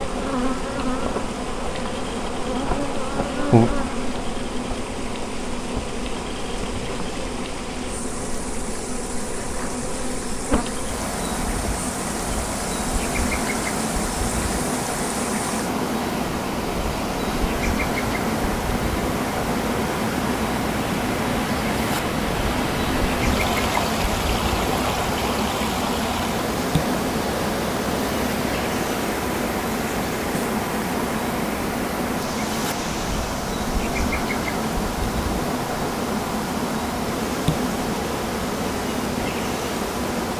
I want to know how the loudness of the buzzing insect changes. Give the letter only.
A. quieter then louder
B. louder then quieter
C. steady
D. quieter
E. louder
C.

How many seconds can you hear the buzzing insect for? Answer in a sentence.
You can hear the buzzing insect for 40 seconds altogether.